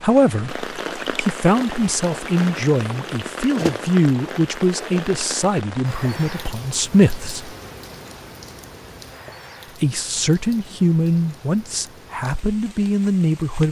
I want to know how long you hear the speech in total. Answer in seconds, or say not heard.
11 s.